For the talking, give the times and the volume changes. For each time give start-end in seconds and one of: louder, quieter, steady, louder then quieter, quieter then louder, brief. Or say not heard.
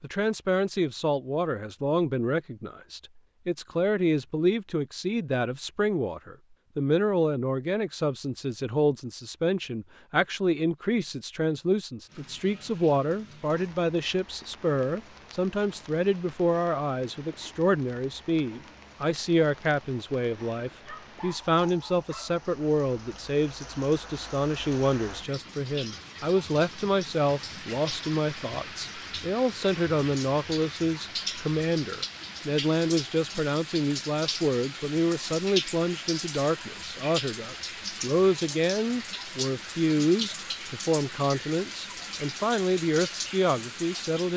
0.0-44.3 steady.